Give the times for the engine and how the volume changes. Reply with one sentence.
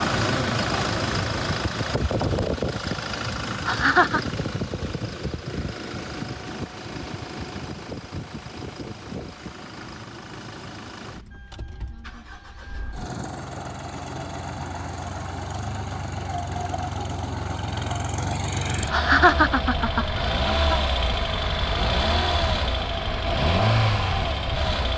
You can hear the engine from 0.0 to 24.9 s, getting quieter then louder.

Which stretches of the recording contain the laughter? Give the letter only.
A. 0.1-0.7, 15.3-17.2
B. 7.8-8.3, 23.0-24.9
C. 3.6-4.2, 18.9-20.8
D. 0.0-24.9
C.